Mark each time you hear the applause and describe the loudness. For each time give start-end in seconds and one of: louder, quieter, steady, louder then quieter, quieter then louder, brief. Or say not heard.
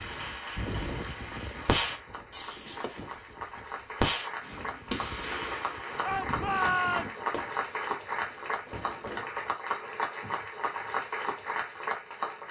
0.0-12.4 louder.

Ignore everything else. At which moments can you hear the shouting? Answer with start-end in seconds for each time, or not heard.
6.0-7.2.